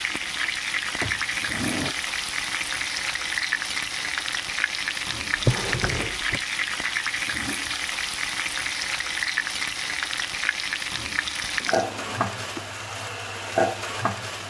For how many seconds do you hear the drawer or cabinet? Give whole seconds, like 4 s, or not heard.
3 s.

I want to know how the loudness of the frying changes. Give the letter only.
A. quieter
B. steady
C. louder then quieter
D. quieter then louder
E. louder
B.